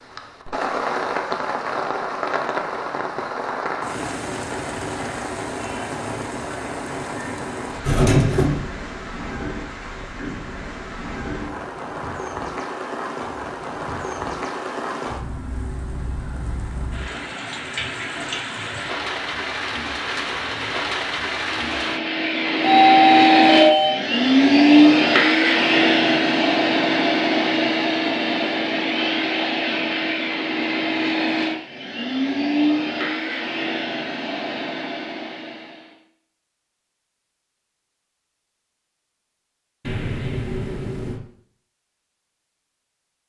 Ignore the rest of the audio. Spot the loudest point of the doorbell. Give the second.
23 s.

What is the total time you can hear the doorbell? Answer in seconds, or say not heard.
4 s.